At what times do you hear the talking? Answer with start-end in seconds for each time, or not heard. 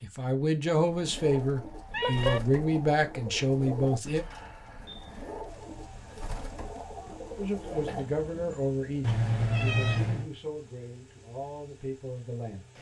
0.0-4.2, 7.3-12.7.